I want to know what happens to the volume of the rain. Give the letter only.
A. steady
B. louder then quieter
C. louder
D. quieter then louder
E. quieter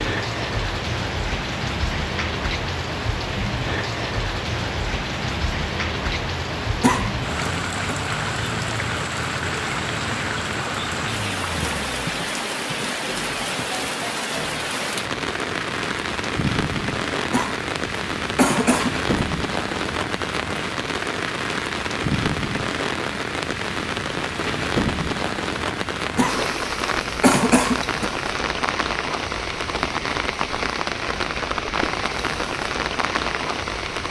A.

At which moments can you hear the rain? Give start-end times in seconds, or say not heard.
0.0-34.0.